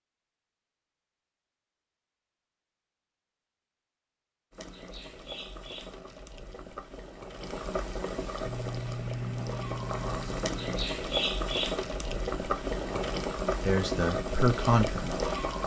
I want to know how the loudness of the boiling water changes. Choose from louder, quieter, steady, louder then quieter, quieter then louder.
louder.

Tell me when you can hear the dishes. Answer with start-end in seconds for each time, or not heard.
not heard.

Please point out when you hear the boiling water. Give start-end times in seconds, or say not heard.
4.5-15.6.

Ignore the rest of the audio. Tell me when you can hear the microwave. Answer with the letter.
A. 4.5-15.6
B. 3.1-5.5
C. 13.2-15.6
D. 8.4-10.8
D.